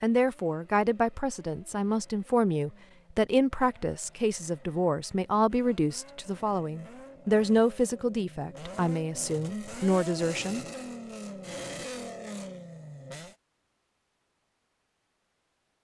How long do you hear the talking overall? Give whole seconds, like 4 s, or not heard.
11 s.